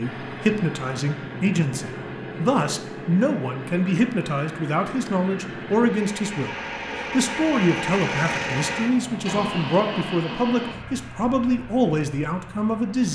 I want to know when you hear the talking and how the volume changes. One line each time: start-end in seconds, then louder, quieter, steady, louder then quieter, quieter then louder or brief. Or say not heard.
0.0-13.0 steady.